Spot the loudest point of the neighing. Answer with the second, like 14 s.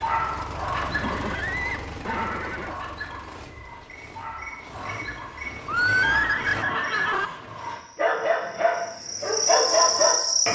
6 s.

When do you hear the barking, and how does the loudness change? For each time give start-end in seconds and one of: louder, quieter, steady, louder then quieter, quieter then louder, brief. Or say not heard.
0.0-10.4 quieter then louder.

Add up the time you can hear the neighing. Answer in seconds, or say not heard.
4 s.